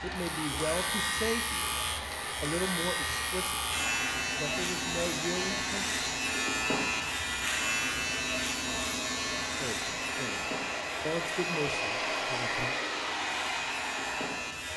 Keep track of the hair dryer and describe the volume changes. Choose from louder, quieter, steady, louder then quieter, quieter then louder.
louder.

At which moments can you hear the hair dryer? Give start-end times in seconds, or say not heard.
0.0-14.7.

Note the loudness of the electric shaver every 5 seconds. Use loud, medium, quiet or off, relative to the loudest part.
loud, loud, medium.